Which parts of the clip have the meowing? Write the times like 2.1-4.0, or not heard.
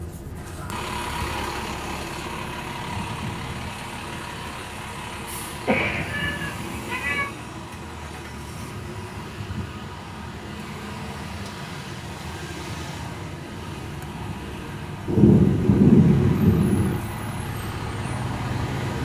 5.7-7.2.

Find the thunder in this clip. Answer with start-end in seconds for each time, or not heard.
15.1-17.0.